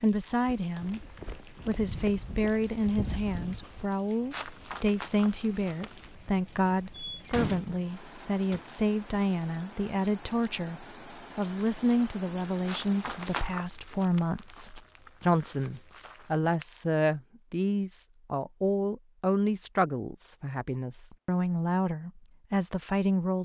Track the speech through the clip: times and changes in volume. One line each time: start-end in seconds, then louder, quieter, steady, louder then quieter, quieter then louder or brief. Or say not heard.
0.0-23.3 steady.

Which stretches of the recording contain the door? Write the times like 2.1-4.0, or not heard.
6.9-8.7.